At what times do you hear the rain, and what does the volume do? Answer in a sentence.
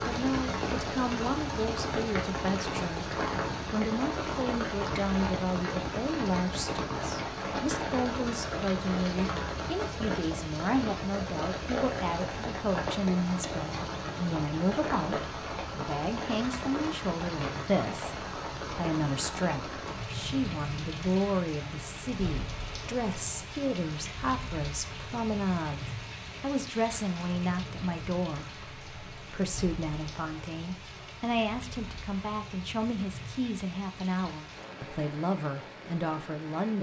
You can hear the rain from 0.0 to 36.7 s, getting quieter.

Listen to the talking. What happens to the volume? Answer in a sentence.
The volume of the talking stays about the same.